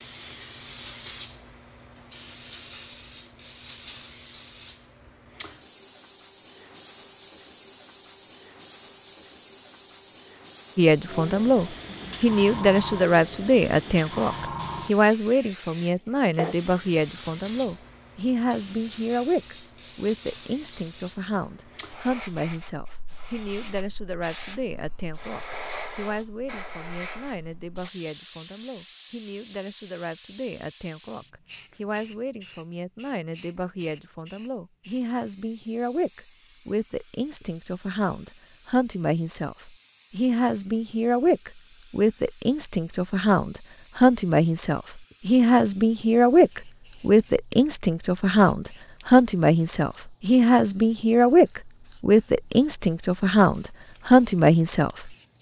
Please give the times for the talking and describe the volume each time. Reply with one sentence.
You can hear the talking from 10.8 to 55.1 s, getting quieter then louder.